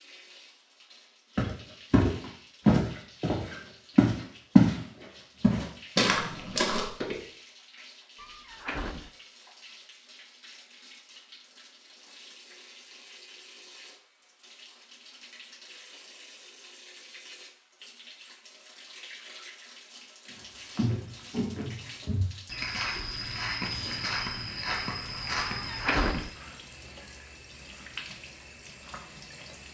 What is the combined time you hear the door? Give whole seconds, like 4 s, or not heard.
2 s.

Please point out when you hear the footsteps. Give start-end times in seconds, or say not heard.
1.4-7.2, 20.8-26.4.